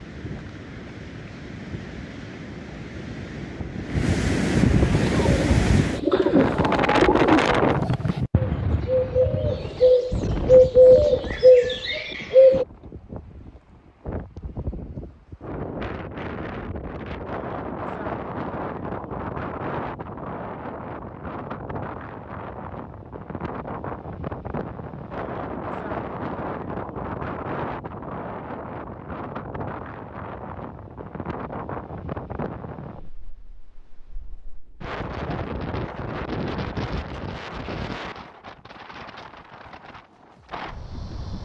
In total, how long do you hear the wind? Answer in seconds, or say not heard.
41 s.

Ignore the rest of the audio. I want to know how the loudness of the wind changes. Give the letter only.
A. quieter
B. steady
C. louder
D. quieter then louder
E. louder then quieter
A.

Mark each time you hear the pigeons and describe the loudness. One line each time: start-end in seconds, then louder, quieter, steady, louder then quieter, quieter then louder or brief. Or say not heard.
4.9-12.7 louder.